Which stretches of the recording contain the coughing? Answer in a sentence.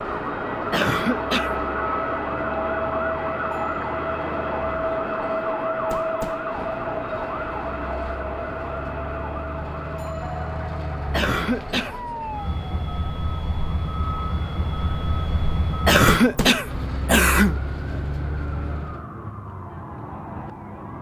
You can hear the coughing from 0.7 to 1.6 s, from 11.1 to 11.9 s and from 15.8 to 17.6 s.